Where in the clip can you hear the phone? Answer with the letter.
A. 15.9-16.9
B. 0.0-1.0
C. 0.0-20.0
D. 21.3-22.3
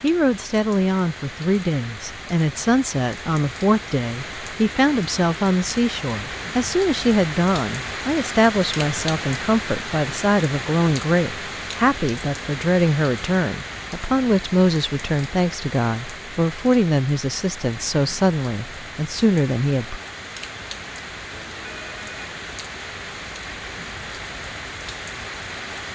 D.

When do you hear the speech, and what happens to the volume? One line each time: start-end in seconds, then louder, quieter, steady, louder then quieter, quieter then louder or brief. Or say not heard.
0.0-20.0 steady.